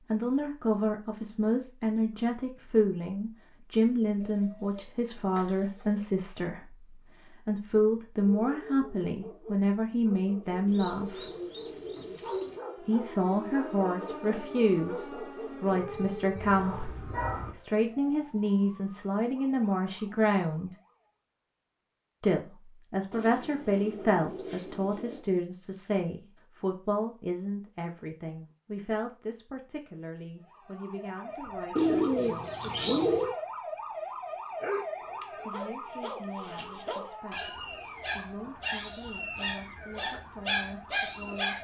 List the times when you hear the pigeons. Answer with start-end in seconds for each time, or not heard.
4.2-6.0, 10.7-12.6, 23.1-25.2, 31.8-33.4.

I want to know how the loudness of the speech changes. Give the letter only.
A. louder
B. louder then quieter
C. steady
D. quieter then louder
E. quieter
E.